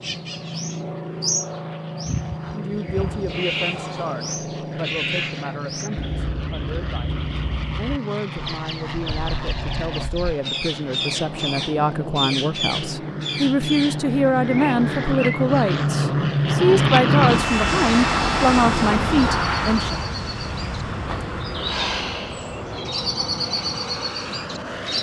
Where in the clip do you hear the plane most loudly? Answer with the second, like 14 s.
17 s.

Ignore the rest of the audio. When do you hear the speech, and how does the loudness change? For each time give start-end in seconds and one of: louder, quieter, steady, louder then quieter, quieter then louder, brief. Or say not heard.
2.5-20.0 louder.